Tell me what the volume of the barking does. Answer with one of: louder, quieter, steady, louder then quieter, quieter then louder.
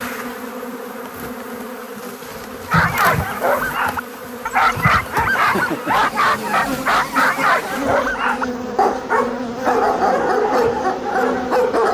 steady.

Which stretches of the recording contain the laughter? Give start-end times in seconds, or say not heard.
5.5-6.5.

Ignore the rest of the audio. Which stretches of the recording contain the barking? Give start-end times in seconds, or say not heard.
2.6-11.9.